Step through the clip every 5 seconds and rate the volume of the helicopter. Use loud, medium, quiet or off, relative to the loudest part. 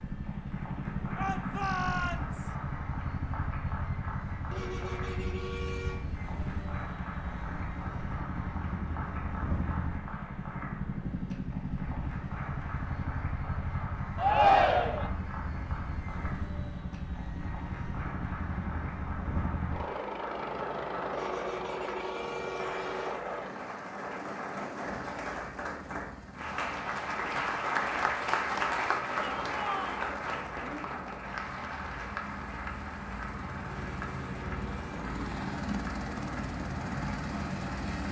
loud, loud, loud, loud, loud, quiet, medium, loud.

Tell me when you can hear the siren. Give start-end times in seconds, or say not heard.
not heard.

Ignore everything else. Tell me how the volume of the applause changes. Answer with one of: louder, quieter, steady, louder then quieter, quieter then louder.
louder then quieter.